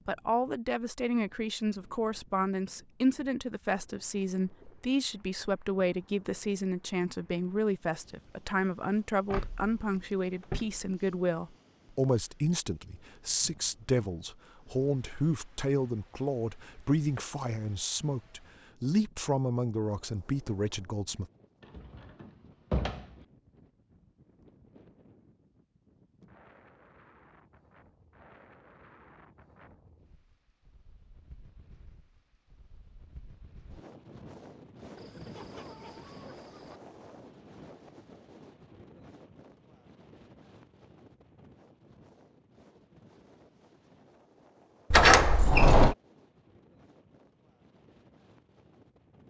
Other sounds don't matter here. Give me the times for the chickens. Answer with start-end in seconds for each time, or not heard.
35.0-36.8.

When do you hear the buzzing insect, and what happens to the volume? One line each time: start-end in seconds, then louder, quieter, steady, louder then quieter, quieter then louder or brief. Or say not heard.
not heard.